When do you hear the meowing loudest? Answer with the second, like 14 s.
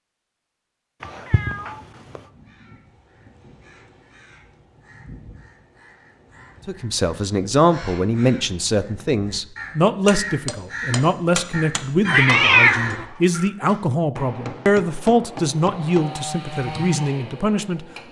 13 s.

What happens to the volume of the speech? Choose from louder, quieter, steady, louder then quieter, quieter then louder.
steady.